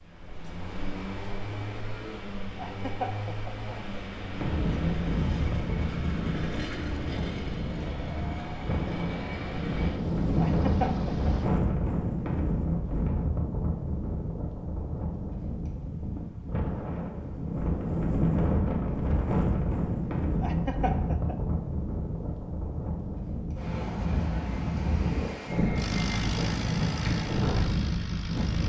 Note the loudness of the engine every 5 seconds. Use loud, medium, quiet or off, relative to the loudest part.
loud, loud, loud, off, off, loud.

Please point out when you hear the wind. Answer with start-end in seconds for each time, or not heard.
4.3-28.6.